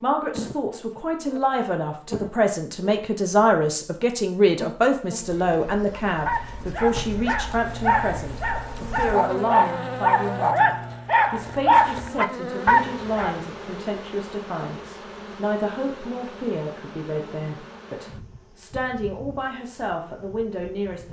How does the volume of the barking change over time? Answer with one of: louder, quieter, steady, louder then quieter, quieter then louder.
louder.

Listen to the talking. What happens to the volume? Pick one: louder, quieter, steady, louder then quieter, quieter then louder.
quieter.